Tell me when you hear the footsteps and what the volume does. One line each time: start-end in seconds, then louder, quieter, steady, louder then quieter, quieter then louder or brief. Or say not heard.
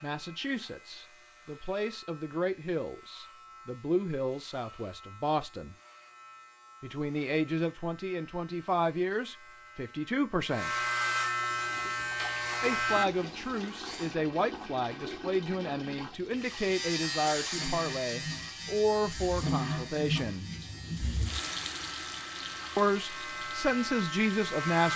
not heard.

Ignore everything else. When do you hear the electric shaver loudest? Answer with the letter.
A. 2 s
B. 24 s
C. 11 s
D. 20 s
C.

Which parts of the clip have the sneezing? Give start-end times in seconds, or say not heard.
not heard.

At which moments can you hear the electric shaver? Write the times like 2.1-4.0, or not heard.
0.0-14.2, 16.4-24.9.